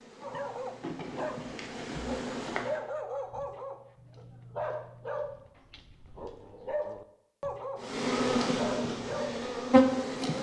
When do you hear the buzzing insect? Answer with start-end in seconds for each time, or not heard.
0.0-2.8, 7.8-10.3.